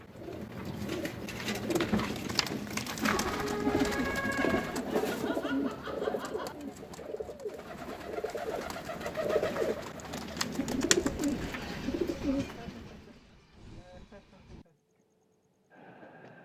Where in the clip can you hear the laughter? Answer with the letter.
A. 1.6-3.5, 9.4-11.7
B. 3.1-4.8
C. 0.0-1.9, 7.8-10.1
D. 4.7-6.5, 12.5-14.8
D.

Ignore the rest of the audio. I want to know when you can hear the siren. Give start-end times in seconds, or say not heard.
3.1-4.8.